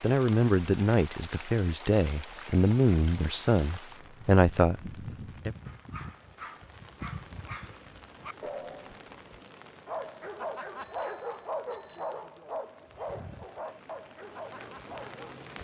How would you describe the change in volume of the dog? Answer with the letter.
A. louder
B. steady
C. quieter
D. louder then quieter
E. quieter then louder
D.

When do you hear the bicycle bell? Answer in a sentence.
The bicycle bell can be heard from 10.8 to 12.2 s.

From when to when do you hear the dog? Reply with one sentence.
You can hear the dog from 5.7 to 15.4 s.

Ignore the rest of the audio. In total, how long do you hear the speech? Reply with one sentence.
You can hear the speech for 5 seconds altogether.